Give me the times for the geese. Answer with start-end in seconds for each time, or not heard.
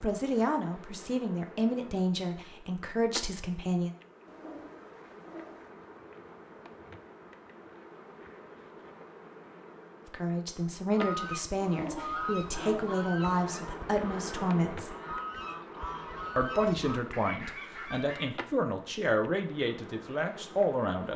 10.8-18.3.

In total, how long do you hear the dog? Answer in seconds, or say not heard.
3 s.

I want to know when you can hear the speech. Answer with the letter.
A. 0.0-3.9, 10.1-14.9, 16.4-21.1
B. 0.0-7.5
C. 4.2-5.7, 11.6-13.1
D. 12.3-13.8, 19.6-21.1
A.